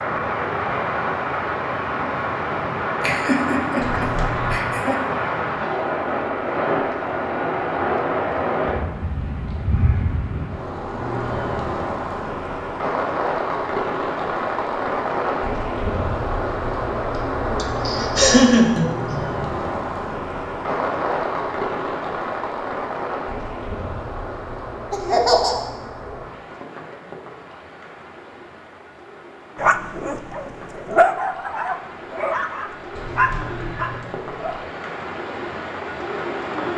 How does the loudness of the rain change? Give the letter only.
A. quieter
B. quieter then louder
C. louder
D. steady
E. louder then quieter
A.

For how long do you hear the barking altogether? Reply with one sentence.
You can hear the barking for 5 seconds altogether.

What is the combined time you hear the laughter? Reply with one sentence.
The laughter can be heard for 4 seconds in total.